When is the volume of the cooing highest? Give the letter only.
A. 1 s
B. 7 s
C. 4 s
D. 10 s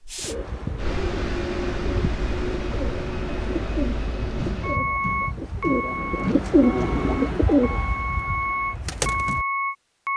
B.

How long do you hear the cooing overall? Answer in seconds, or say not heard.
9 s.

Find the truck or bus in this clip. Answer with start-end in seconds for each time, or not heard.
0.0-10.1.